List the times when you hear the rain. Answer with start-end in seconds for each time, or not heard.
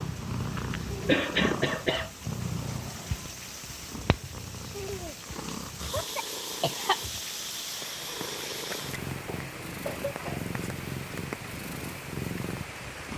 0.0-13.1.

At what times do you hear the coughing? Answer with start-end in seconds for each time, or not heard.
1.1-2.1, 5.9-7.0, 9.2-10.5.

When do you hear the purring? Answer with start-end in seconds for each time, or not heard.
0.0-13.1.